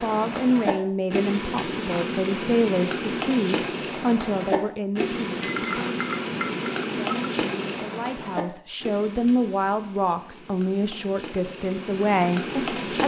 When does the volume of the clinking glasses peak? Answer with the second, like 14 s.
6 s.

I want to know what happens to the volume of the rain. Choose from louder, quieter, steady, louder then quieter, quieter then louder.
quieter.